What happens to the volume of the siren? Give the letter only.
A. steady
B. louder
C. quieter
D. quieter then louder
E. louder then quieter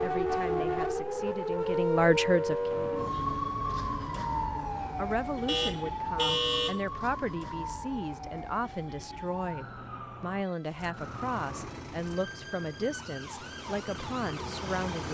C.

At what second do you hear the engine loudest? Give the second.
15 s.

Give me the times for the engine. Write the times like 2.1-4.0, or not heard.
10.9-15.0.